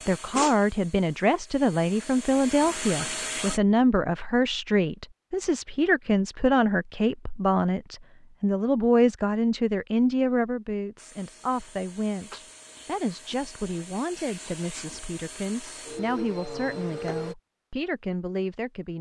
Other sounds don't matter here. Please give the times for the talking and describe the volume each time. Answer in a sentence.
The talking can be heard from 0.1 to 18.9 s, getting quieter.